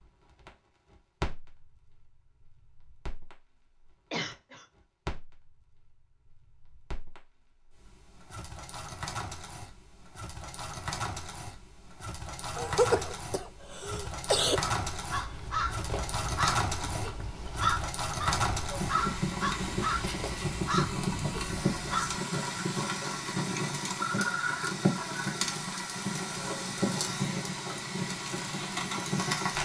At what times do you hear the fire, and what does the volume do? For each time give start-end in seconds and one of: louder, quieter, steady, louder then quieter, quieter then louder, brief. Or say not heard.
0.0-29.5 louder.